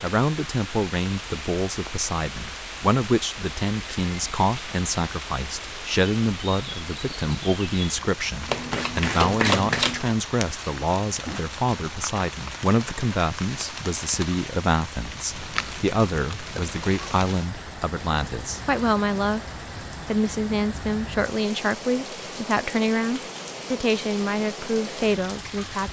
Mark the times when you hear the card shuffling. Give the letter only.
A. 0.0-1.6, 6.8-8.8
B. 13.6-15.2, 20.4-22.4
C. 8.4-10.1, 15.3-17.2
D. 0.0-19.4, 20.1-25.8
C.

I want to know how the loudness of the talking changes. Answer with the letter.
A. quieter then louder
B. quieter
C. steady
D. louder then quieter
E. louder
C.